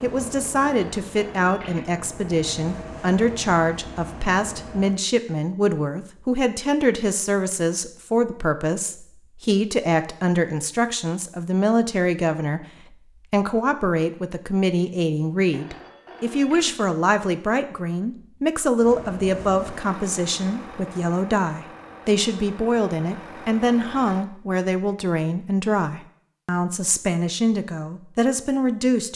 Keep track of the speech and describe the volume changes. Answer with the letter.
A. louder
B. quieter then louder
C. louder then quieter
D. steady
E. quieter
D.